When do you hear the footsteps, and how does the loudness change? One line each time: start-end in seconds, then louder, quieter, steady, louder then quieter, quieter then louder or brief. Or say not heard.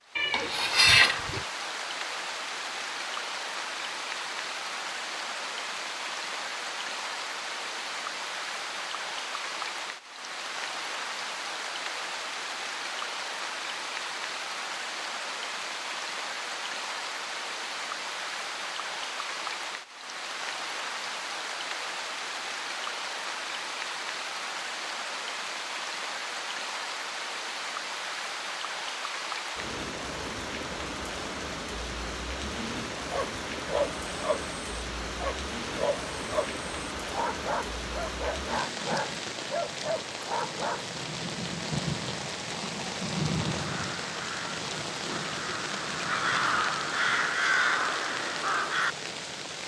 not heard.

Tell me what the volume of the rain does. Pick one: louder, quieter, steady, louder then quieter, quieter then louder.
steady.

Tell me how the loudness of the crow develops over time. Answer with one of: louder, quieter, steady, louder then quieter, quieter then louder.
louder.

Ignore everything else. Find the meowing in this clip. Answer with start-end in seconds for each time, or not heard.
0.1-1.4.